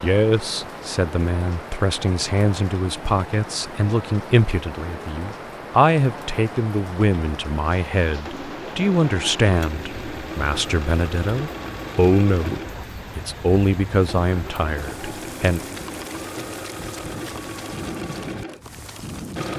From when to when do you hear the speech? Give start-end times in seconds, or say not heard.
0.0-15.6.